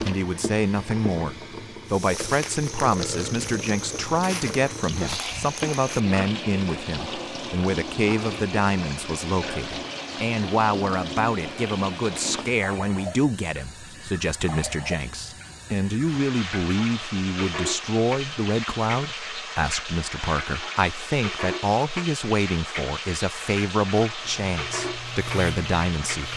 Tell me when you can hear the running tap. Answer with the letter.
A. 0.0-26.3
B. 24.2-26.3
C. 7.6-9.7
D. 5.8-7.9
A.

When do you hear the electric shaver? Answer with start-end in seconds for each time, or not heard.
24.2-26.3.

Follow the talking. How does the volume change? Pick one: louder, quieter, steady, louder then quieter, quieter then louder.
steady.